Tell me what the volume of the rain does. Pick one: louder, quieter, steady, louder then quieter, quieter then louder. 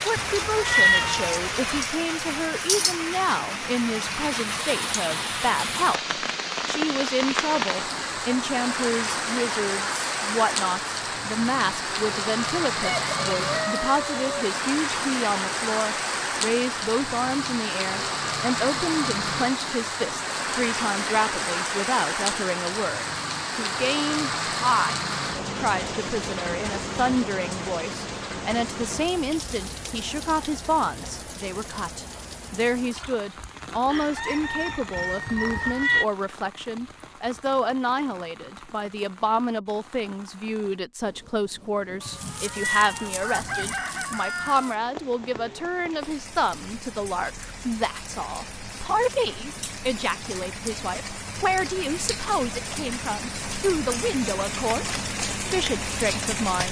quieter then louder.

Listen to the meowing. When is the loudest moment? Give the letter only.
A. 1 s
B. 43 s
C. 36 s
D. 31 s
A.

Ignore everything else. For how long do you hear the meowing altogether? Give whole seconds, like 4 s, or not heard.
4 s.